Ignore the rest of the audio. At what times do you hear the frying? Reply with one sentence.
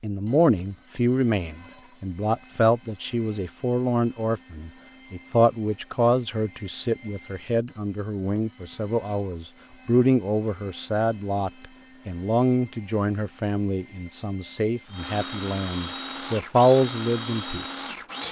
You can't hear the frying here.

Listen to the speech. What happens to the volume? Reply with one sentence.
The volume of the speech stays about the same.